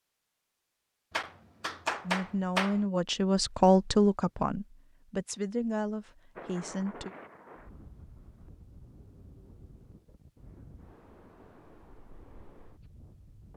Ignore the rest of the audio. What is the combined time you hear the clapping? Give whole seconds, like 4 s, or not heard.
2 s.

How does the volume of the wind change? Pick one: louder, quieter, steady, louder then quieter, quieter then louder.
quieter.